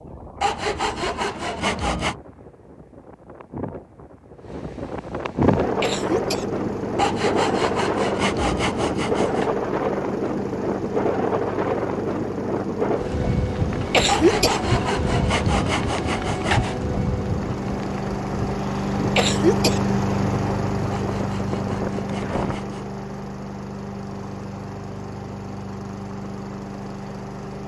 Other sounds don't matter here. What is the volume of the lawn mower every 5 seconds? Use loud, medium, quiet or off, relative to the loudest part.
off, medium, medium, loud, loud, medium.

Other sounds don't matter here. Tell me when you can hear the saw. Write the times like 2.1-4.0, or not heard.
0.4-2.1, 7.0-9.5, 14.1-16.8, 20.9-22.9.